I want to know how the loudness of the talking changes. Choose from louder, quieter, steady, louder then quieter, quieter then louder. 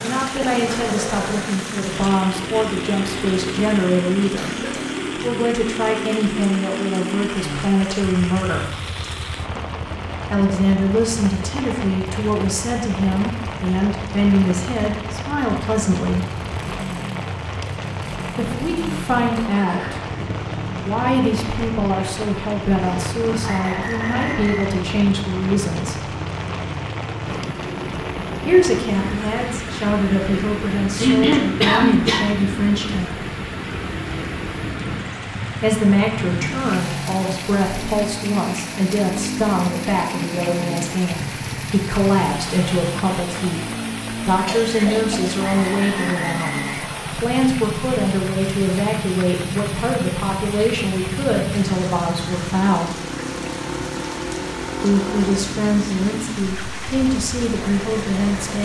steady.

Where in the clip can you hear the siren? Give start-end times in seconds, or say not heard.
not heard.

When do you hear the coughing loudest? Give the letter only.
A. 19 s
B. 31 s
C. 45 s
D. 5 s
B.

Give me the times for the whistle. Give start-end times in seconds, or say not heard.
23.4-24.7, 45.4-47.2.